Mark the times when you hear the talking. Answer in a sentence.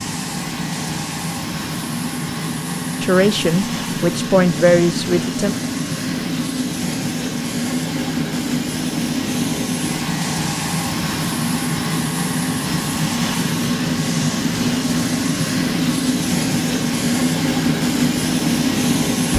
You can hear the talking from 3.0 to 5.5 s.